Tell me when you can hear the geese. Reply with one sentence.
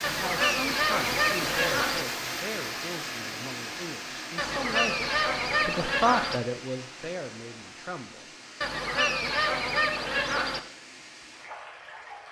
You can hear the geese from 0.0 to 2.0 s, from 4.3 to 6.4 s and from 8.6 to 10.6 s.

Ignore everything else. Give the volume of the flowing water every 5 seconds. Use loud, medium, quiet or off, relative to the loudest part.
loud, medium, medium.